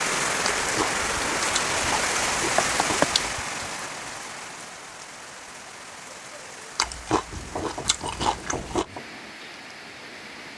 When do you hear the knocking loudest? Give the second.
3 s.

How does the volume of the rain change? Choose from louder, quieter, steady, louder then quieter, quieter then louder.
quieter.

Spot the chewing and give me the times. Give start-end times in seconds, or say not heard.
0.6-3.4, 6.8-8.8.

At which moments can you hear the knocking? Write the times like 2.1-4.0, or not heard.
2.5-3.2, 7.3-9.1.